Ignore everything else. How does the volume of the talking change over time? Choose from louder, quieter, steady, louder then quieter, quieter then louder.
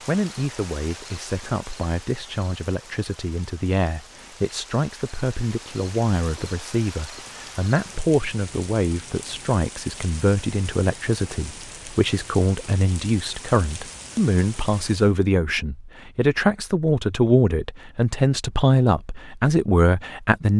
louder.